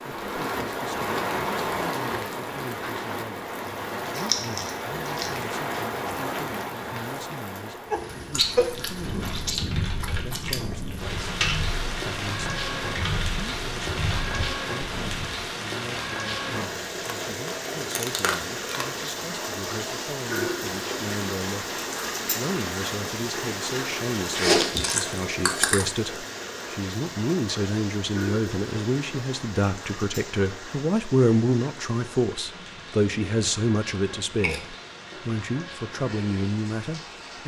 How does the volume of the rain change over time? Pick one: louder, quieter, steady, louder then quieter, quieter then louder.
quieter.